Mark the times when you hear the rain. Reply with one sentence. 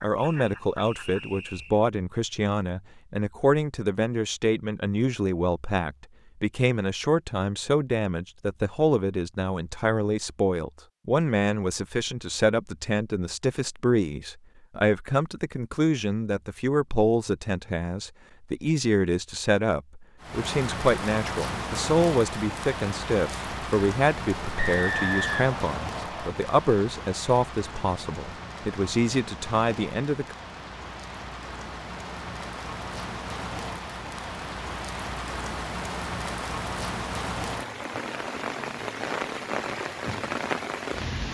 You can hear the rain from 20.2 to 41.3 s.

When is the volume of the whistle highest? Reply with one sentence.
The loudest moment of the whistle is at 25 seconds.